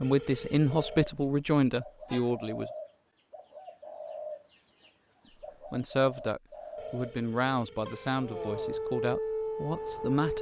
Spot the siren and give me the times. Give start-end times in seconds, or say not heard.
8.1-10.3.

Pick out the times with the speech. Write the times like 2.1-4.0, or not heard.
0.0-2.7, 5.7-10.3.